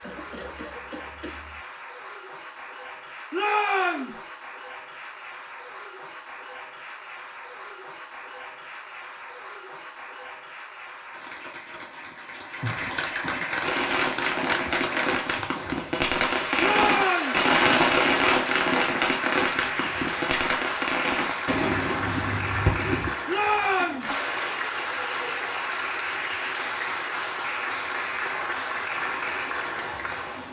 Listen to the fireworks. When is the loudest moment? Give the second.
18 s.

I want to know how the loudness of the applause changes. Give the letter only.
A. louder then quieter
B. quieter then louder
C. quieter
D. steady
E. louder
E.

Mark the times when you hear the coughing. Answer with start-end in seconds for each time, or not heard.
0.0-1.6, 12.6-13.5, 23.8-24.4.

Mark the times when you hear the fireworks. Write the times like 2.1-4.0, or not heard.
13.6-23.1.